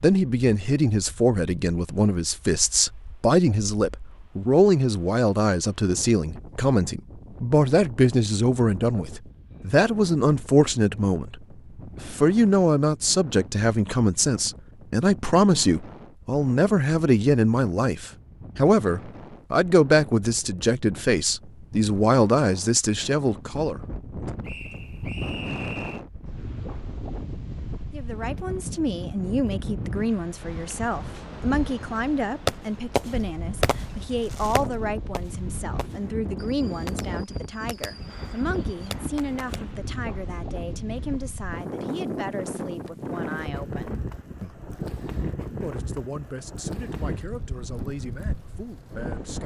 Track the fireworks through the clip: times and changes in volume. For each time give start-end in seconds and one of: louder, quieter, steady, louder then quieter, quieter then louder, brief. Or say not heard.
32.5-39.6 quieter then louder.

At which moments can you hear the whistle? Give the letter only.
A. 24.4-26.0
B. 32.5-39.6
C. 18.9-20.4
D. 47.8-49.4
A.